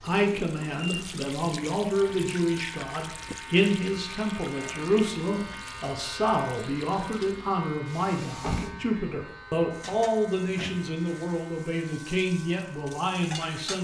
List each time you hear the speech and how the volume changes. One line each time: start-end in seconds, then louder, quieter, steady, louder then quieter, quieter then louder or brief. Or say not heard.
0.0-13.8 steady.